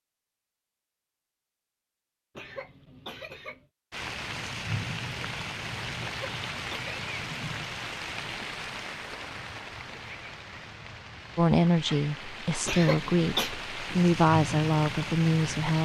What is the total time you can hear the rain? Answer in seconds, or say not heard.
12 s.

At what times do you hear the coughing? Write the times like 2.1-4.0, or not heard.
2.4-3.6, 6.0-7.0, 12.7-13.5.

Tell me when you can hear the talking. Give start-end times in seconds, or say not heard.
11.3-15.8.